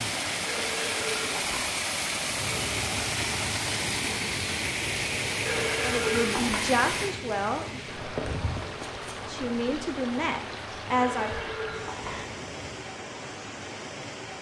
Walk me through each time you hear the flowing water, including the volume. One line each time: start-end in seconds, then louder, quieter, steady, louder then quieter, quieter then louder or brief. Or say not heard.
0.0-14.3 quieter.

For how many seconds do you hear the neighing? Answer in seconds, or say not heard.
4 s.